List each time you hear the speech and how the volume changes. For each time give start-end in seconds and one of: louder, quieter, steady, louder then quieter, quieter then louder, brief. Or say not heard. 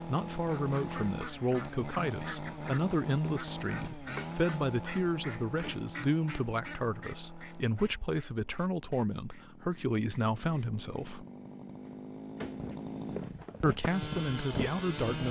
0.0-11.2 steady
13.6-15.2 brief.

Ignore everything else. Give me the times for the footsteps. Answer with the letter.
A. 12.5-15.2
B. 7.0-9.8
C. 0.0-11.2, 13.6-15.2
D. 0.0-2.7
A.